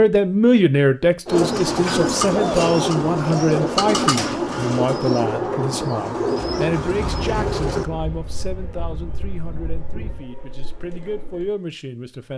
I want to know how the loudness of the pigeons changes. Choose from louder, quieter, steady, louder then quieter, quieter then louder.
quieter.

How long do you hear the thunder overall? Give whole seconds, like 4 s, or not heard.
3 s.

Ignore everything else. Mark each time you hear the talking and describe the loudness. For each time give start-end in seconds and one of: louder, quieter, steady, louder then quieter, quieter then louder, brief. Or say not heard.
0.0-12.3 quieter.